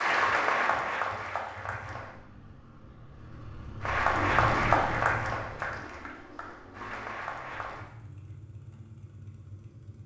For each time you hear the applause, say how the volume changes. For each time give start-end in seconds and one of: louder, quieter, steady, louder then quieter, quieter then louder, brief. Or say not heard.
0.0-2.1 brief
3.8-7.8 quieter then louder.